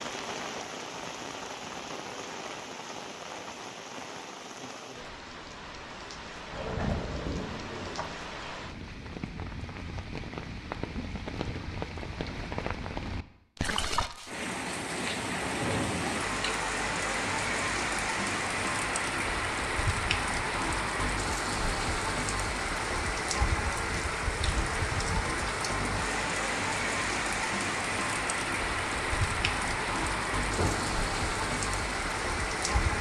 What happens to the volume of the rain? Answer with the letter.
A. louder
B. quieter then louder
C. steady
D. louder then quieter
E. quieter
A.